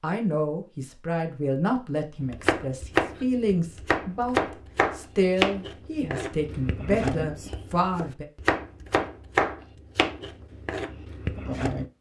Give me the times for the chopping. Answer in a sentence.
You can hear the chopping from 2.3 to 11.8 s.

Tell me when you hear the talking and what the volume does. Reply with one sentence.
The talking can be heard from 0.0 to 8.2 s, at a steady volume.